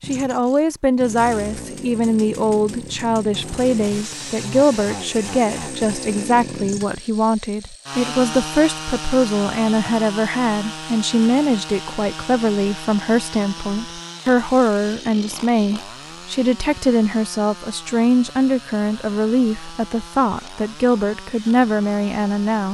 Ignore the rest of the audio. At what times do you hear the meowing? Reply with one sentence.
The meowing can't be heard in this clip.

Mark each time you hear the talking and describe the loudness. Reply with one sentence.
The talking can be heard from 0.1 to 22.6 s, at a steady volume.